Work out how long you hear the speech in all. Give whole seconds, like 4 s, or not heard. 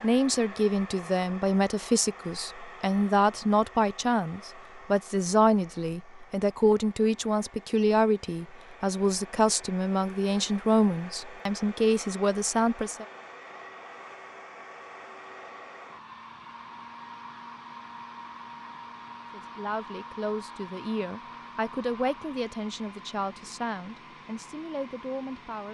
19 s.